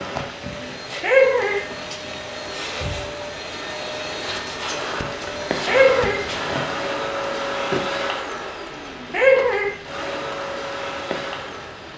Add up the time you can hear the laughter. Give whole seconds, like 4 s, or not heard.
2 s.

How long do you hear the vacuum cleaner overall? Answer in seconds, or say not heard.
12 s.